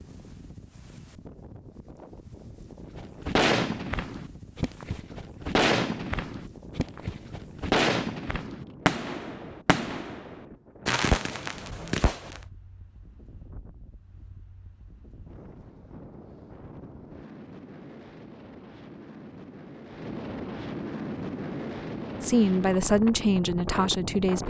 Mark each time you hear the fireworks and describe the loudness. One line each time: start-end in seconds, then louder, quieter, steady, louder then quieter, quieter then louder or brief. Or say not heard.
3.0-12.4 steady.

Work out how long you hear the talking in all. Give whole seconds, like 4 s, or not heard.
2 s.